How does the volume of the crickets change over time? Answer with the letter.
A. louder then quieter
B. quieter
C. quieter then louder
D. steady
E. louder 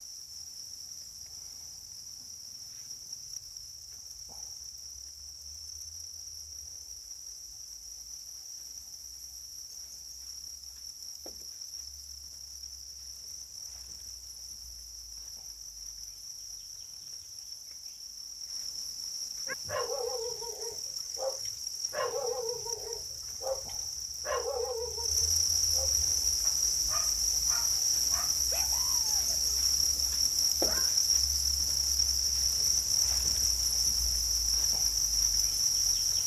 E.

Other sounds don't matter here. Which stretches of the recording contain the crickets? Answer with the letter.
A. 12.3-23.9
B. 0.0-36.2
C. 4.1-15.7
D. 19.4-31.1
B.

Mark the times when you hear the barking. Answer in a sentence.
You can hear the barking from 19.4 to 31.1 s.